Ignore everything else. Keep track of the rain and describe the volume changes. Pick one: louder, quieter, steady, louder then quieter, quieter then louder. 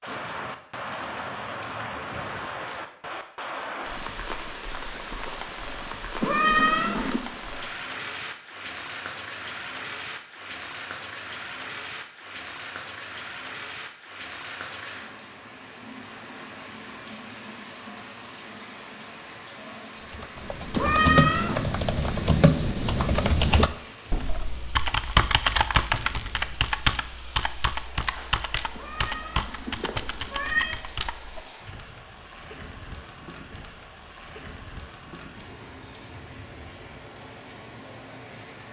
quieter.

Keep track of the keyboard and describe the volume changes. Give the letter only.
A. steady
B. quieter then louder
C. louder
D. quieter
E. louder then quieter
D.